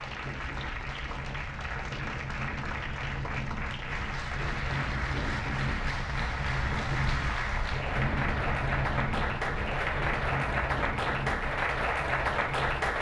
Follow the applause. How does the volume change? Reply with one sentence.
The loudness of the applause goes up.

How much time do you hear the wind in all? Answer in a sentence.
The wind can be heard for 13 seconds in total.